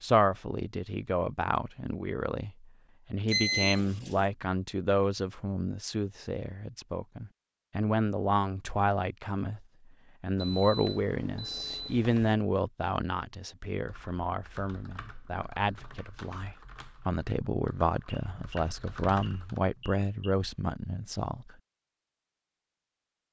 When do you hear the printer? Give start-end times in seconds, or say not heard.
not heard.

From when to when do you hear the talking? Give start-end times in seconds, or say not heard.
0.0-21.6.